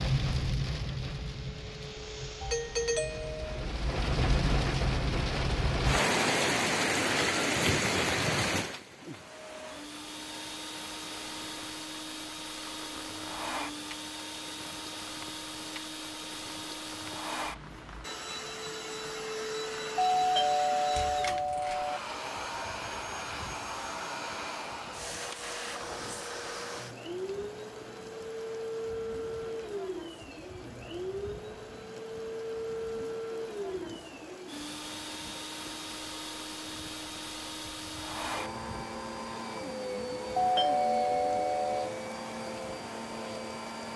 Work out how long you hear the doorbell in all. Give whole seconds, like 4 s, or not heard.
5 s.